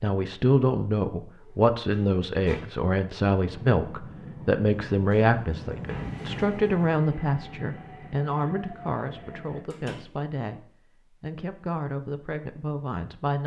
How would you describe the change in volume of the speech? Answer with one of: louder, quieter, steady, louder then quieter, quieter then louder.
quieter.